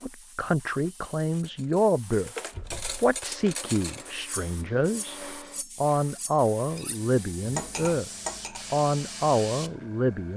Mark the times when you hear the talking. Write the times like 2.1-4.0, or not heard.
0.0-2.3, 3.0-5.2, 5.8-8.1, 8.7-10.3.